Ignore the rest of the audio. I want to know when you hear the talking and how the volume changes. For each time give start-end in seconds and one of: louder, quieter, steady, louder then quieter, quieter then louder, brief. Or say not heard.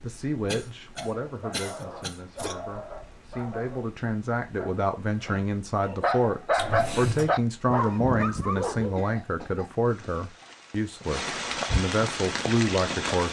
0.0-13.2 louder.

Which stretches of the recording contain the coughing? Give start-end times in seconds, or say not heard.
0.5-2.5, 6.5-7.3, 8.9-9.7.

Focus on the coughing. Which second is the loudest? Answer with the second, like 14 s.
7 s.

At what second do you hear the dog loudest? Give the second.
7 s.